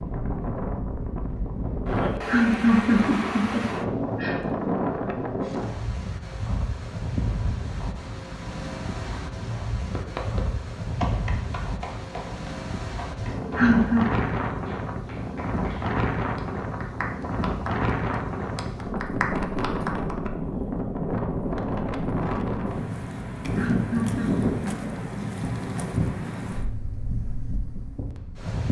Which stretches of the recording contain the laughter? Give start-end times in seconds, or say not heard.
2.1-4.5, 13.2-14.1, 23.4-25.1.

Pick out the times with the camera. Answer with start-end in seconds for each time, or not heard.
not heard.